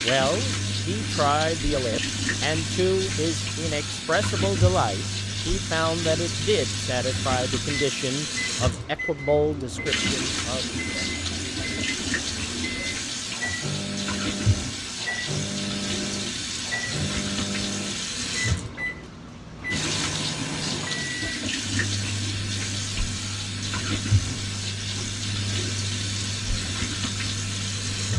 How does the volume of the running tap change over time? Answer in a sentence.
The loudness of the running tap stays about the same.